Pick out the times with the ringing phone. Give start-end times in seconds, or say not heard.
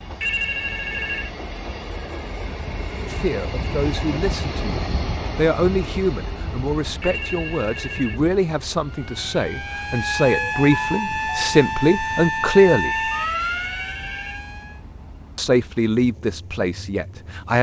0.2-1.3, 7.0-8.2, 12.9-14.4.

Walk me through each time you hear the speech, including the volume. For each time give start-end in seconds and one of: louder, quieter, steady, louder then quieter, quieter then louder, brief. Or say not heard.
3.0-12.9 louder
15.3-17.5 brief.